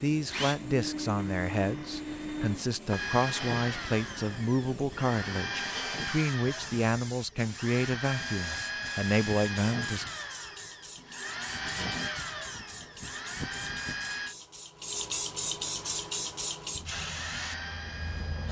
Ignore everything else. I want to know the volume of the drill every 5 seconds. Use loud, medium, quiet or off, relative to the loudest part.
loud, loud, loud, medium.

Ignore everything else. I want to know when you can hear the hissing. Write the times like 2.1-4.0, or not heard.
0.0-18.4.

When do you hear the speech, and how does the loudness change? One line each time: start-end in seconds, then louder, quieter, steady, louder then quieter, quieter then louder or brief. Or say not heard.
0.0-10.1 steady.